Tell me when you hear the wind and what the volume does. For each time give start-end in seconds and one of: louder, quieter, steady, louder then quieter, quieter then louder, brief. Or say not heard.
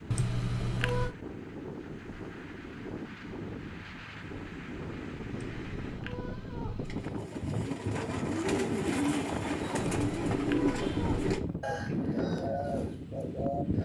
0.0-13.8 louder.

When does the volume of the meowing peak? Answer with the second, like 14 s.
1 s.